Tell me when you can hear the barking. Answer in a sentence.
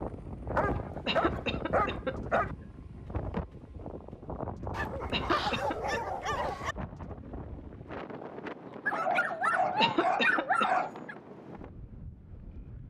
The barking can be heard from 0.6 to 2.5 s, from 4.7 to 6.8 s and from 8.8 to 11.2 s.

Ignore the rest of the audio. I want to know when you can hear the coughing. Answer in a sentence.
The coughing can be heard from 1.1 to 2.7 s, from 5.1 to 6.0 s and from 9.8 to 10.7 s.